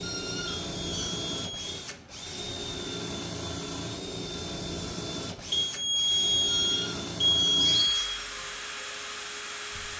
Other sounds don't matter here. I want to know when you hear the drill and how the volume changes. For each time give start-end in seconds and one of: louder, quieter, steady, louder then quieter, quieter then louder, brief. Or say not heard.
0.0-9.9 steady.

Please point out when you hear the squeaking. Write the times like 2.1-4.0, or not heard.
0.0-1.2, 6.5-8.2.